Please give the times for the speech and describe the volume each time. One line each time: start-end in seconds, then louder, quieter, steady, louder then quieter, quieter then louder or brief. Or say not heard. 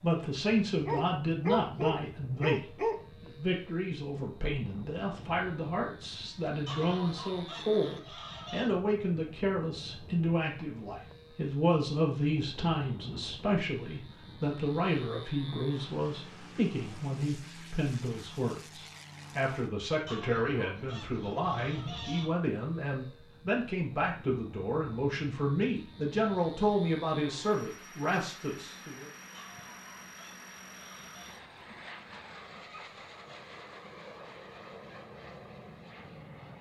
0.0-29.1 steady.